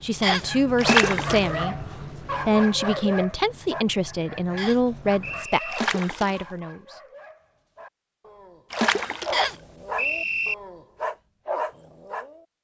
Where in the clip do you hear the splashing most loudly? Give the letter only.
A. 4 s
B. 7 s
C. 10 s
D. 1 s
D.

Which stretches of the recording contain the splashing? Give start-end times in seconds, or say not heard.
0.8-1.6, 5.7-6.5, 8.7-9.6.